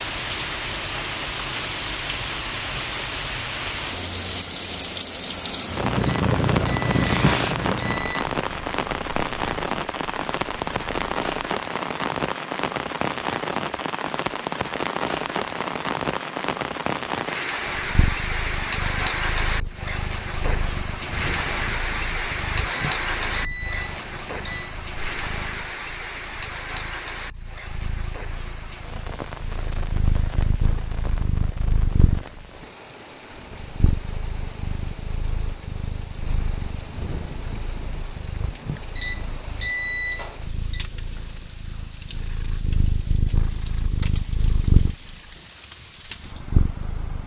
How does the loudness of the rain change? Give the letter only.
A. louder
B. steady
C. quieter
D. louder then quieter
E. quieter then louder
C.